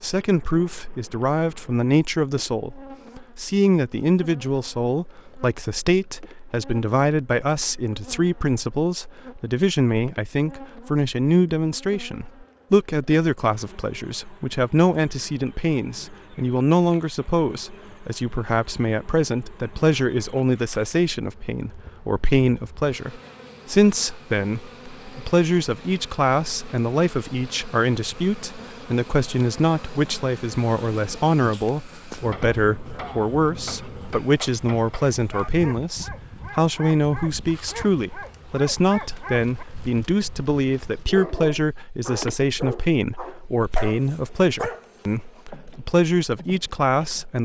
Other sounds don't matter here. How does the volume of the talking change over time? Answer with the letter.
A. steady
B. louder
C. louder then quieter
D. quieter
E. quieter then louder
A.